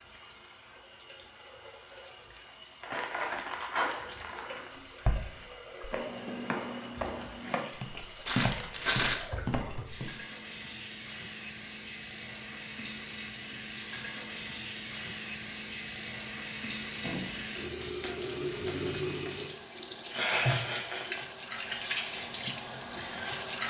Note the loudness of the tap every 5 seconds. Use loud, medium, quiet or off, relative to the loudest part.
quiet, quiet, medium, medium, loud.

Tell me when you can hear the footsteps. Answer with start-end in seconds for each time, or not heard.
5.0-10.1.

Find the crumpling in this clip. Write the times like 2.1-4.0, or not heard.
2.8-4.7, 8.2-9.2, 17.0-19.5.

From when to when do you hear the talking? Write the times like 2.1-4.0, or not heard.
not heard.